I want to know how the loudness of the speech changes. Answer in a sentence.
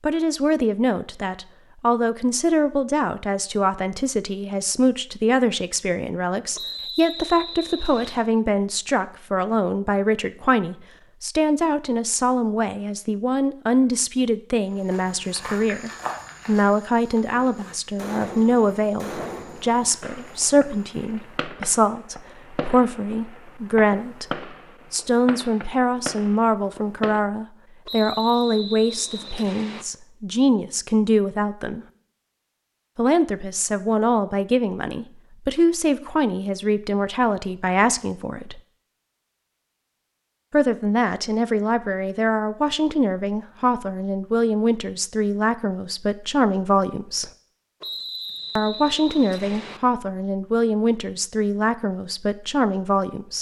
The volume of the speech stays about the same.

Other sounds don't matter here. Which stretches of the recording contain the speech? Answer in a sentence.
You can hear the speech from 0.0 to 31.9 s, from 33.0 to 38.6 s, from 40.5 to 47.3 s and from 48.5 to 53.3 s.